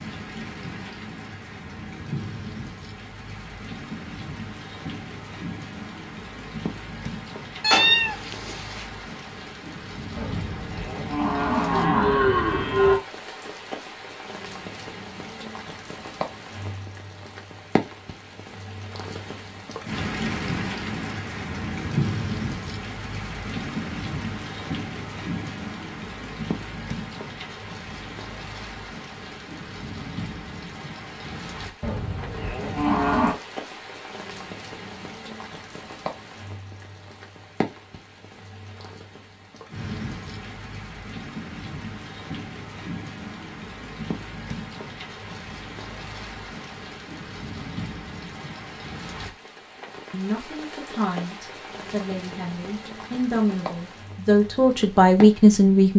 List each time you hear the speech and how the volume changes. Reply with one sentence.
The speech can be heard from 50.1 to 55.9 s, getting louder.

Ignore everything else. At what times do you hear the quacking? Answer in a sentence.
You can't hear the quacking here.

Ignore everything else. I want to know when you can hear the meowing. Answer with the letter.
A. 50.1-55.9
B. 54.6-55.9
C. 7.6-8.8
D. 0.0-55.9
C.